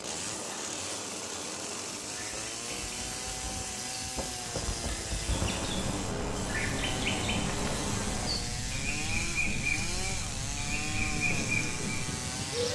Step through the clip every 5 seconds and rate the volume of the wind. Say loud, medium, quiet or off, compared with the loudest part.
medium, loud, loud.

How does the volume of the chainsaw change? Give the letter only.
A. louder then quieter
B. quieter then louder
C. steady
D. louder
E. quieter
C.